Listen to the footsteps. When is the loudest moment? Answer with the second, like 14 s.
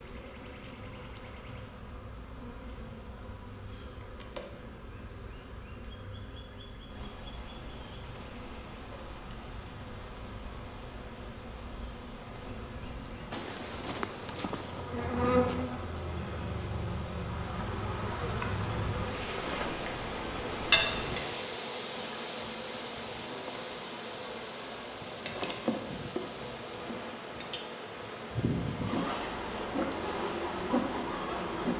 14 s.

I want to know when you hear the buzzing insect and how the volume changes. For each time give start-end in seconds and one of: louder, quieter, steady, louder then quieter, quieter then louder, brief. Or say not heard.
0.0-31.7 louder.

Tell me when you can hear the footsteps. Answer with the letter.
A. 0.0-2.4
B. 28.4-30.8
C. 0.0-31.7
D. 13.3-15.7
D.